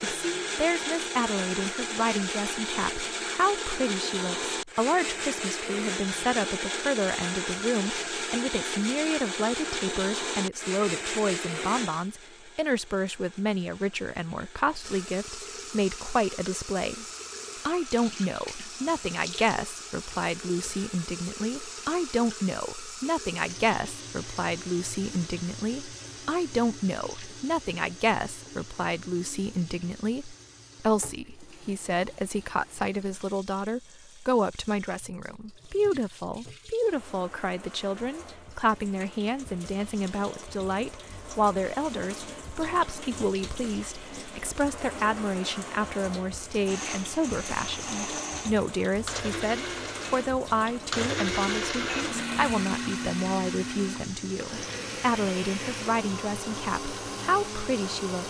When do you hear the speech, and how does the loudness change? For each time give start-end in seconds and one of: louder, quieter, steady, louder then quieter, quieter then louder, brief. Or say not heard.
0.0-17.1 steady
17.6-58.2 steady.